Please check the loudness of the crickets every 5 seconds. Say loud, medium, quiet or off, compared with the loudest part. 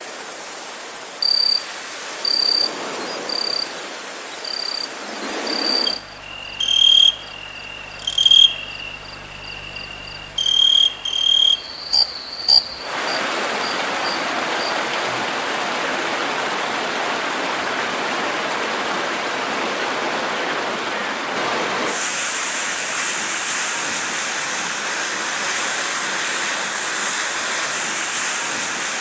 medium, loud, loud, off, off, off.